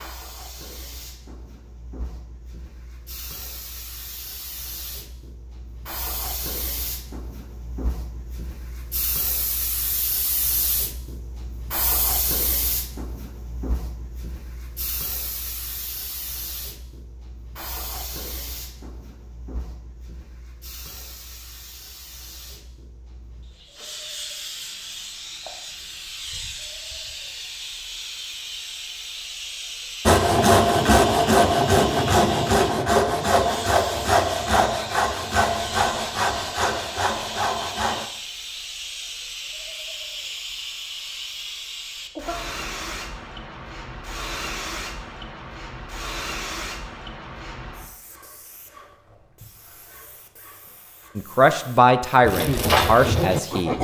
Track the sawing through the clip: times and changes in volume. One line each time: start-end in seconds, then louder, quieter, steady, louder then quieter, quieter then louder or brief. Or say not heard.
30.1-38.1 quieter
52.2-53.7 brief.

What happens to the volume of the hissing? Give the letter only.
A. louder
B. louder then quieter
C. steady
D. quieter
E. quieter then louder
C.